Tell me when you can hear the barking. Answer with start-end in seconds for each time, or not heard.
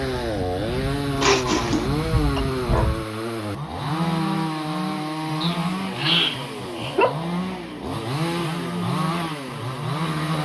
1.1-2.9, 5.4-7.2.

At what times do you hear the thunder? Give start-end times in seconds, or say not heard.
0.0-3.0.